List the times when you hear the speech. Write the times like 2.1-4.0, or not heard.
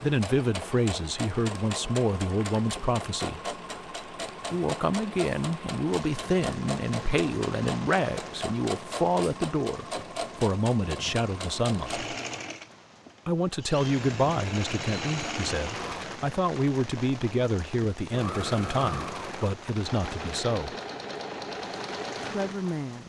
0.0-3.5, 4.5-12.1, 13.2-20.8, 22.2-23.0.